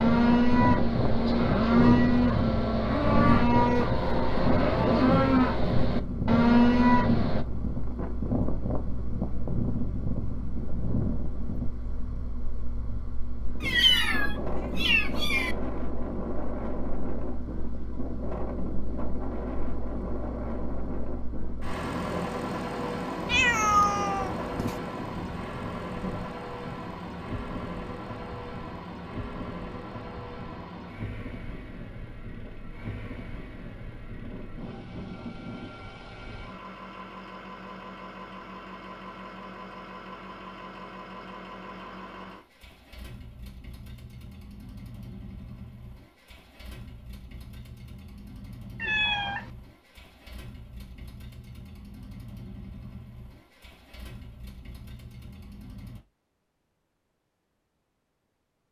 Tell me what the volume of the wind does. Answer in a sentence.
The loudness of the wind goes down.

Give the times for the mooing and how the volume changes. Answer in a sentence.
You can hear the mooing from 0.0 to 7.5 s, at a steady volume.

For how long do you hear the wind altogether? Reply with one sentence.
The wind can be heard for 36 seconds in total.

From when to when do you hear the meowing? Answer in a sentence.
The meowing can be heard from 13.6 to 15.6 s, from 23.2 to 24.8 s and from 48.8 to 49.5 s.